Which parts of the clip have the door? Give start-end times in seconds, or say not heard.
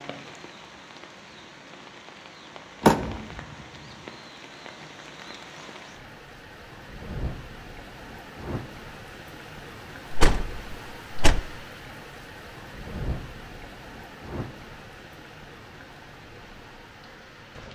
2.8-3.2, 10.1-11.4.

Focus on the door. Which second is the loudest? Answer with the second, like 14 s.
3 s.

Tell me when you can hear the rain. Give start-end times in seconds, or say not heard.
0.0-17.7.